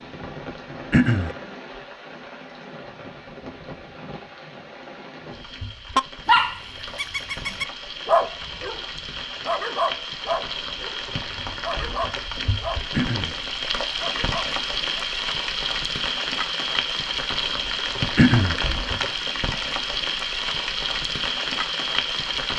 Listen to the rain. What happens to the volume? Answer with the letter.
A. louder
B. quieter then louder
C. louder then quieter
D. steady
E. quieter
A.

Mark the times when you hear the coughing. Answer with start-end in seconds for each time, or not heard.
0.9-1.4, 12.9-13.3, 18.1-18.6.